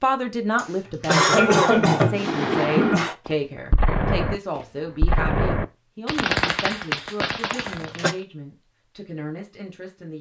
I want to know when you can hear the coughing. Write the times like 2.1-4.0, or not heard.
0.6-3.1, 7.5-8.2.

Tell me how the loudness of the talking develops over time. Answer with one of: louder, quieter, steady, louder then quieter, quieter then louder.
quieter.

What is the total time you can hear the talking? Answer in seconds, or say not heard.
10 s.